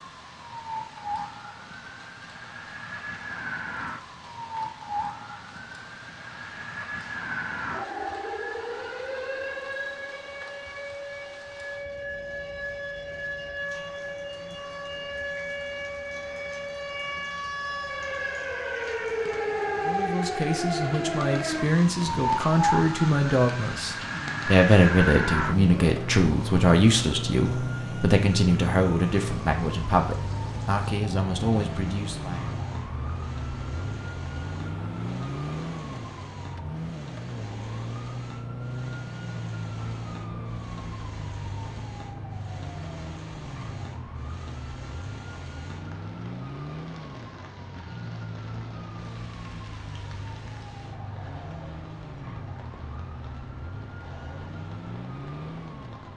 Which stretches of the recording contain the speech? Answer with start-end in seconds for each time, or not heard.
19.8-32.5.